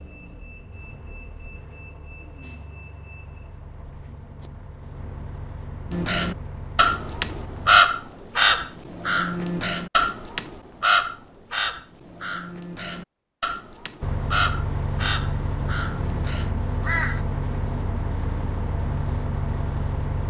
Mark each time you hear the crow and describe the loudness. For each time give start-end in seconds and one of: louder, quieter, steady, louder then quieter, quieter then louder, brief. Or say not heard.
5.9-17.2 quieter.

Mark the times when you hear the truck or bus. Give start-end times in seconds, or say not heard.
0.0-7.8, 14.0-20.2.